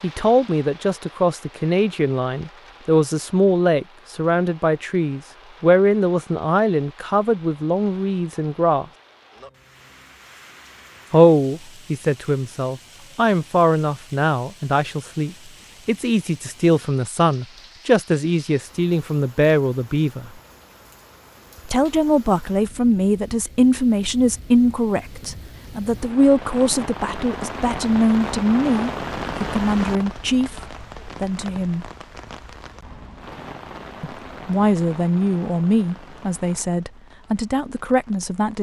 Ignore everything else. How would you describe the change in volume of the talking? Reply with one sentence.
The volume of the talking stays about the same.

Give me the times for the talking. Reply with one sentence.
The talking can be heard from 0.0 to 8.8 s, from 11.1 to 20.3 s, from 21.6 to 31.9 s and from 34.0 to 38.5 s.